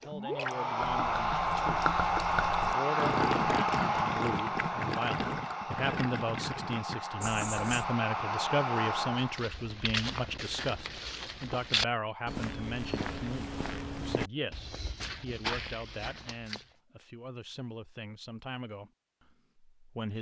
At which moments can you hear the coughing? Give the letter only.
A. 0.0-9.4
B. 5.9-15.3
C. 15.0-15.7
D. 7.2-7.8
D.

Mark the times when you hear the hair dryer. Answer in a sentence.
The hair dryer can be heard from 0.0 to 9.4 s.